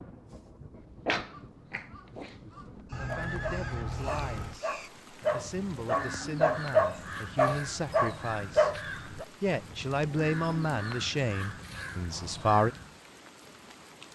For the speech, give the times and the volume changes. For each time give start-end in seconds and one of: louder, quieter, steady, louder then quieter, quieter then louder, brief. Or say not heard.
2.5-12.7 louder.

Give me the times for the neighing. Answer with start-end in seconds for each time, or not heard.
2.9-4.6.